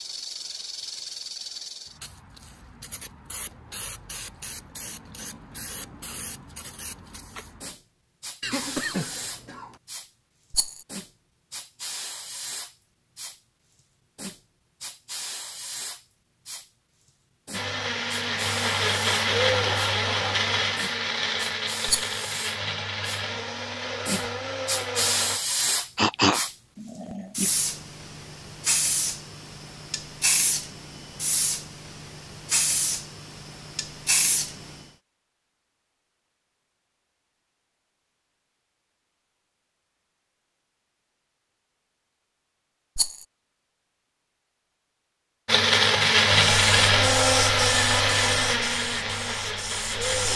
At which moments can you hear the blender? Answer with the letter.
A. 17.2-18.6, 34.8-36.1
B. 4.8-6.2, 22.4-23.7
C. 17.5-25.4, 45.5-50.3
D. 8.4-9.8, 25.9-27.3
C.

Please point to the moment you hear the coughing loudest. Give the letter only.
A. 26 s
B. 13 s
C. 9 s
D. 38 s
A.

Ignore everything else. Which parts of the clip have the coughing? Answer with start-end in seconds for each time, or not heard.
8.4-9.8, 25.9-27.3.